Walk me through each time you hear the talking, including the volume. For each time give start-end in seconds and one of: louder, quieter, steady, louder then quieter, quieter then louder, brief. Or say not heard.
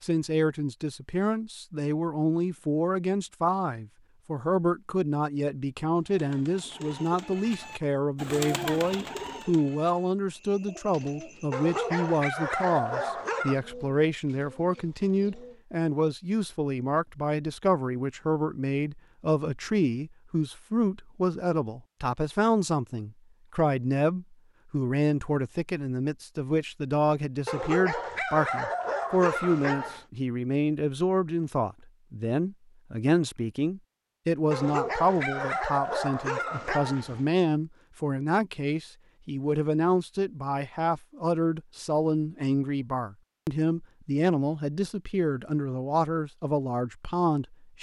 0.0-47.7 steady.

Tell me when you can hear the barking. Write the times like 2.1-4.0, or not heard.
11.5-13.6, 27.4-30.1, 34.5-37.2.